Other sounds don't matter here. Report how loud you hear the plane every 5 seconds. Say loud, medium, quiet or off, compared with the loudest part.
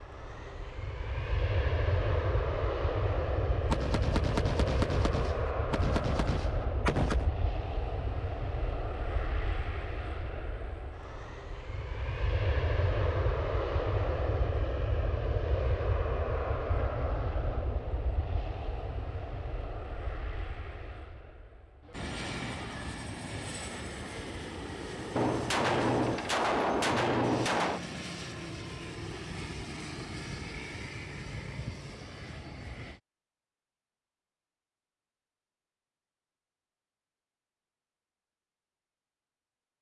loud, loud, loud, loud, medium, medium, medium, off.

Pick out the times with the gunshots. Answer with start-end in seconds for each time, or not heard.
3.6-7.3, 25.1-27.9.